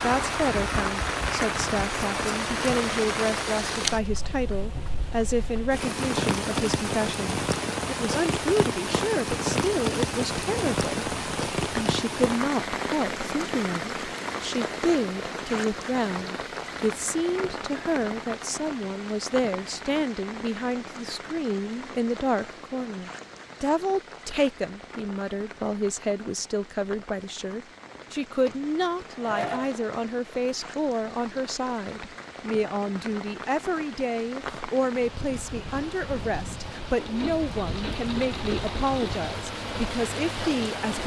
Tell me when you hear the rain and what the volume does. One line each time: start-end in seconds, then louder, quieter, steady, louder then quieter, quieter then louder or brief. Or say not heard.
0.0-41.0 quieter then louder.